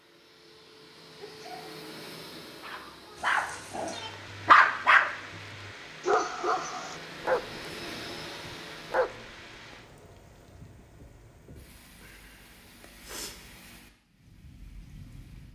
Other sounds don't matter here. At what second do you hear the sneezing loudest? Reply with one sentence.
The volume of the sneezing peaks at 13 seconds.